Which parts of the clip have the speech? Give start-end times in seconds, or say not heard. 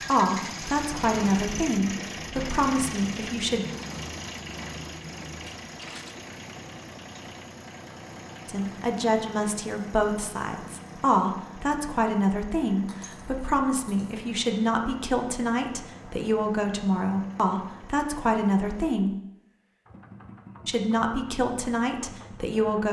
0.1-3.6, 8.4-19.1, 20.6-22.8.